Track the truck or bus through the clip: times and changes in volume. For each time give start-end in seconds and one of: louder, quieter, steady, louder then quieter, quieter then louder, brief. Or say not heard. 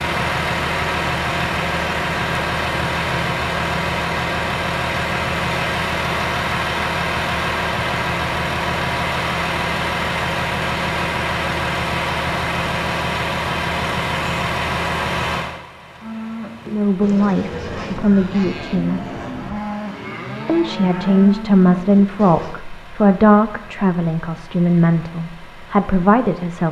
0.0-26.6 quieter.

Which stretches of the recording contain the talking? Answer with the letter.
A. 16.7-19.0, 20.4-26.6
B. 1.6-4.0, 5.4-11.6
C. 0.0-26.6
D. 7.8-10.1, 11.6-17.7
A.